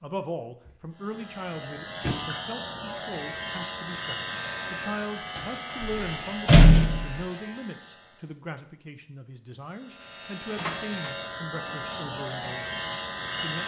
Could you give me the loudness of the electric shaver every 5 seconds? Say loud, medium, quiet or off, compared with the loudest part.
loud, medium, loud.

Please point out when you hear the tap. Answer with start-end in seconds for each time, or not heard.
not heard.